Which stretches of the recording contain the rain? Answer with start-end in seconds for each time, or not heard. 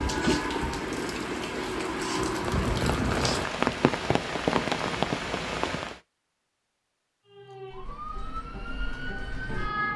0.0-6.0.